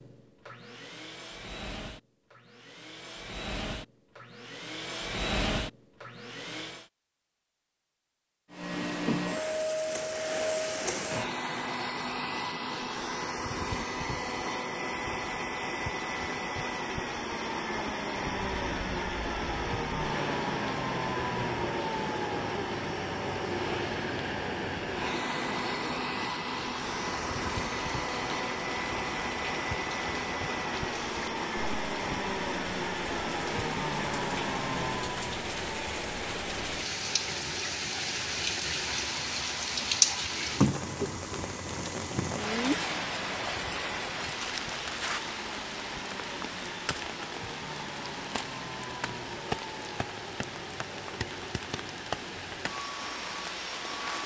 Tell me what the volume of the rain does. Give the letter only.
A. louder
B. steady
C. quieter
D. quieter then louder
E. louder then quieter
E.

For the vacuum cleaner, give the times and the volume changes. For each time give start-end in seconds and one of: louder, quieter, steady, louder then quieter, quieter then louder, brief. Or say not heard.
0.0-6.8 louder
8.5-54.2 quieter.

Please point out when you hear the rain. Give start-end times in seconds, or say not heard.
18.5-54.2.